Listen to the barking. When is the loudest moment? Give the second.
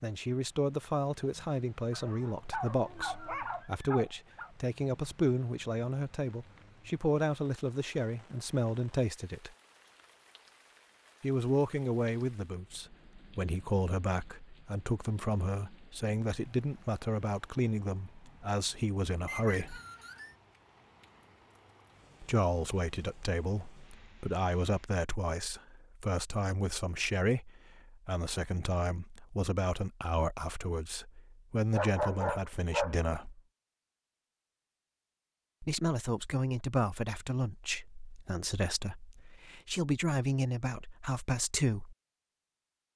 32 s.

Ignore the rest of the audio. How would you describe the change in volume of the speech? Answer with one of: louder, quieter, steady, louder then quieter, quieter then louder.
steady.